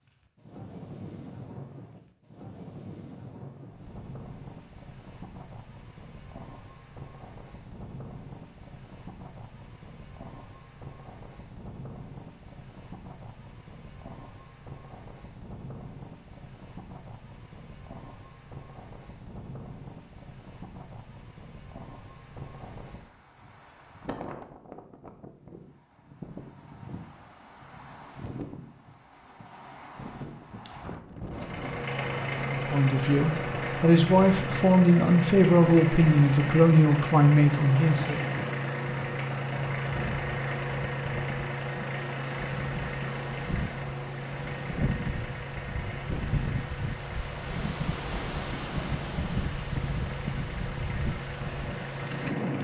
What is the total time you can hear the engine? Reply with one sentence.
You can hear the engine for 21 seconds altogether.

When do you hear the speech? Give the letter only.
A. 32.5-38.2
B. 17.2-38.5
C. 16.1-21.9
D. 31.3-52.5
A.